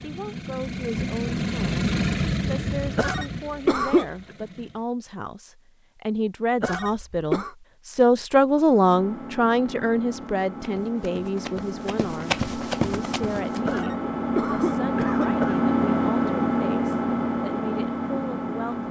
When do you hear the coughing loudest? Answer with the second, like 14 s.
4 s.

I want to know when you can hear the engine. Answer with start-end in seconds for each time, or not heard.
0.0-4.8, 8.7-18.8.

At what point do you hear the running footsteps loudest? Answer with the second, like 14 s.
12 s.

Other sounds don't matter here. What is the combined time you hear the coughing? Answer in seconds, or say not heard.
4 s.